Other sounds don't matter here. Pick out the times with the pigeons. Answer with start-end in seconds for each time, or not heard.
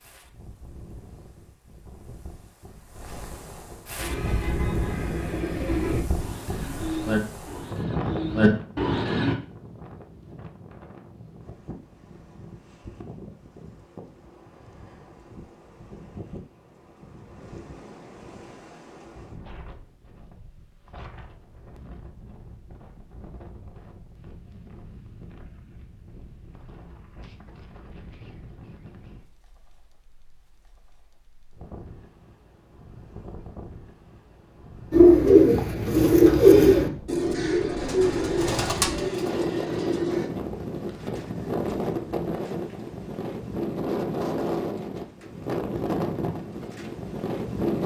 4.0-9.3, 34.9-40.3.